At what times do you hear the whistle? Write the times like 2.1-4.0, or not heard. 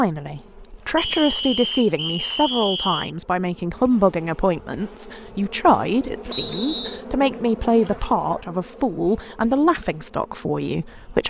0.9-3.1, 6.3-7.0.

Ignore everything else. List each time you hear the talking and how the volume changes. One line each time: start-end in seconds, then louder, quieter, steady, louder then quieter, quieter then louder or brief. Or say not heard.
0.0-11.2 steady.